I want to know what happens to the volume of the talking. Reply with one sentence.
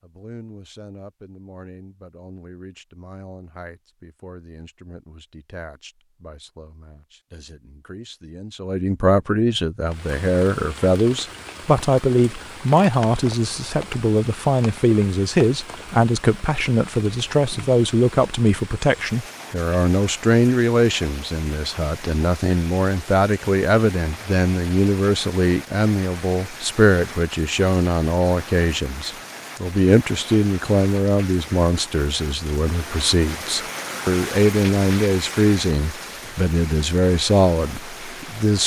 The volume of the talking goes up.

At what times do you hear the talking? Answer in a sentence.
You can hear the talking from 0.0 to 38.6 s.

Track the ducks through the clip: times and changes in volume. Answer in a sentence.
The ducks can't be heard in this clip.